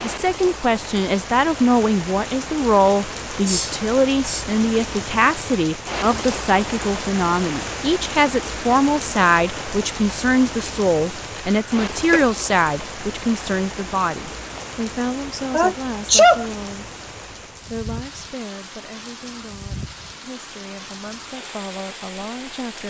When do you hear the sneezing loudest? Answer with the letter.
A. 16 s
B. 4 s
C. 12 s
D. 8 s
A.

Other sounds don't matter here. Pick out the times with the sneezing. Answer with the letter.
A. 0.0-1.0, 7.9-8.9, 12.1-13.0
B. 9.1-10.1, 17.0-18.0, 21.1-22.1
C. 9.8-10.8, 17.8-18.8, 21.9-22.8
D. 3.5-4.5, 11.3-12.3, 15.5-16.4
D.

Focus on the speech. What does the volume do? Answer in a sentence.
The volume of the speech goes down.